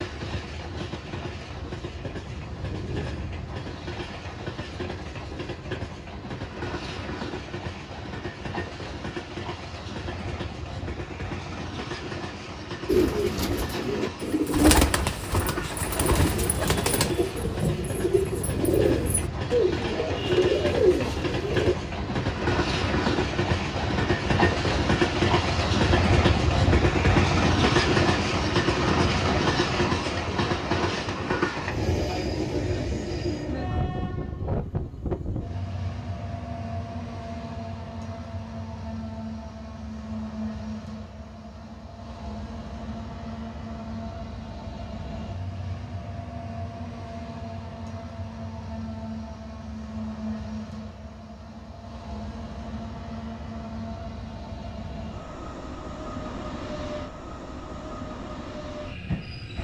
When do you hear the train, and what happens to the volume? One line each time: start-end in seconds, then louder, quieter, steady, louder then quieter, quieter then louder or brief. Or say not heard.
0.0-59.6 louder then quieter.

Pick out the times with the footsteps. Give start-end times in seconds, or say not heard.
not heard.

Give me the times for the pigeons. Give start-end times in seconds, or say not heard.
12.8-21.8.